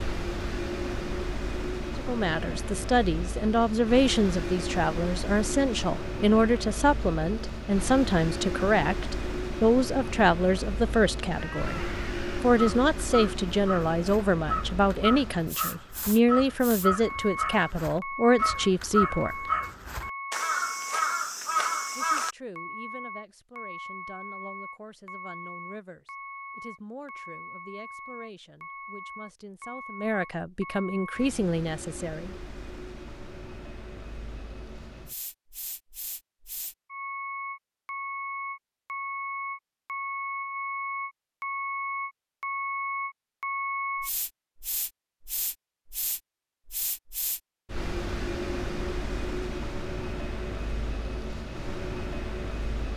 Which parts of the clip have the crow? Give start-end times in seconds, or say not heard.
11.3-22.4.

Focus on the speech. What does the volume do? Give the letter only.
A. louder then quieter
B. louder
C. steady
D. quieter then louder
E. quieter
D.